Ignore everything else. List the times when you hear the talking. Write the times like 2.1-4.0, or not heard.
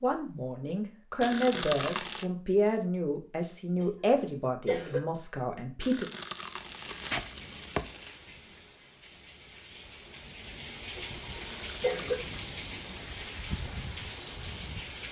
0.0-6.1.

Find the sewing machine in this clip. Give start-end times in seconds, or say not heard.
not heard.